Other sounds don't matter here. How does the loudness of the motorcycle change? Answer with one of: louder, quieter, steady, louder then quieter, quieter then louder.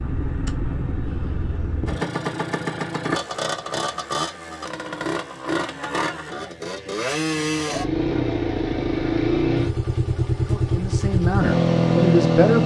louder.